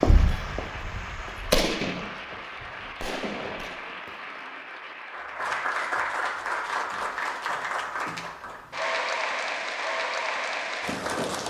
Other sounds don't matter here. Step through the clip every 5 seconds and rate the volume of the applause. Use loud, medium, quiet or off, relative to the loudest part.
medium, loud, loud.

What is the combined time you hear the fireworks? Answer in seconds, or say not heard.
4 s.